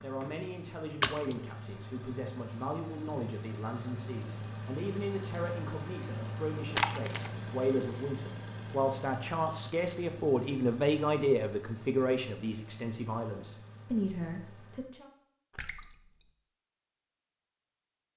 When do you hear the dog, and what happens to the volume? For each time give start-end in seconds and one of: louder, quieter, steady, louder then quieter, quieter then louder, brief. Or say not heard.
not heard.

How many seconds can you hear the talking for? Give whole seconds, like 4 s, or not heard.
15 s.